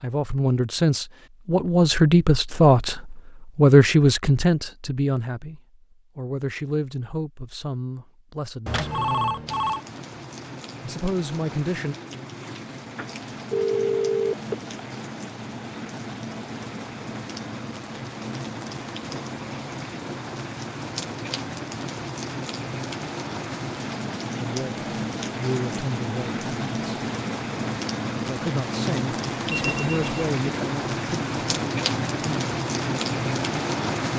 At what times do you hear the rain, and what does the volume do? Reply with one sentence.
The rain can be heard from 9.4 to 34.1 s, getting louder.